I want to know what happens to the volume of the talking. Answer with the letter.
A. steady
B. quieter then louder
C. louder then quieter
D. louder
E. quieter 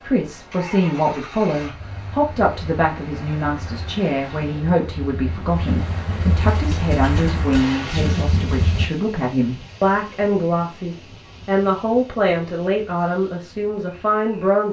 A.